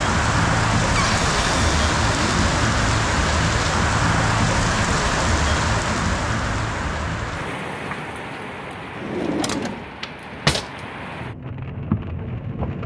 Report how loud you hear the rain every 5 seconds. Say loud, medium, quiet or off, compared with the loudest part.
loud, medium, medium.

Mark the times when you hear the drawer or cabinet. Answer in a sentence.
The drawer or cabinet can be heard from 0.9 to 2.6 s and from 8.9 to 10.7 s.